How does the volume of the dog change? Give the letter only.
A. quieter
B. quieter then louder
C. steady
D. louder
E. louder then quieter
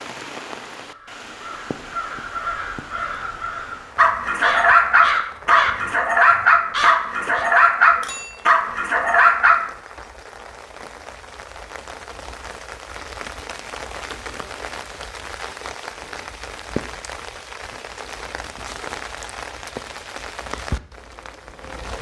C.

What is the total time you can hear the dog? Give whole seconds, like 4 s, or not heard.
6 s.